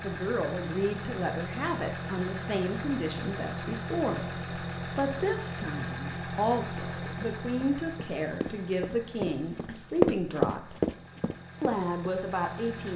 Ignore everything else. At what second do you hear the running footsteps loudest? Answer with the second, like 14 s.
10 s.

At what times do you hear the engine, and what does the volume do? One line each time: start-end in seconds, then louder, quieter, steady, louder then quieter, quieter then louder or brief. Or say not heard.
0.0-12.9 quieter.